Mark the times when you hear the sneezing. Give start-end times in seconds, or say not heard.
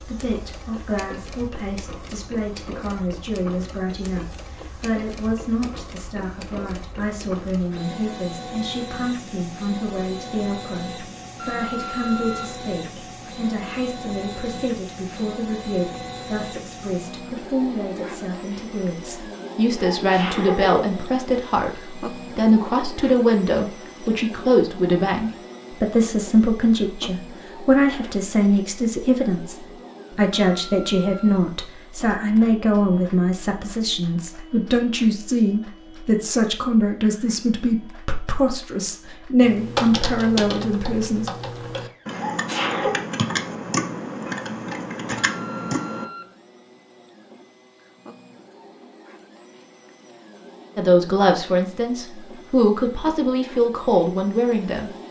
19.7-20.9, 42.1-43.0.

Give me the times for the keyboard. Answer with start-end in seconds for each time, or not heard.
39.4-46.0.